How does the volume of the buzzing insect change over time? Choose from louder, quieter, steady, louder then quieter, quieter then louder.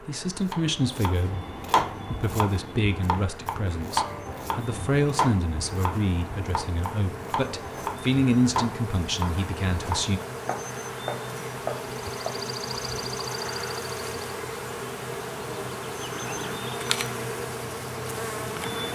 louder.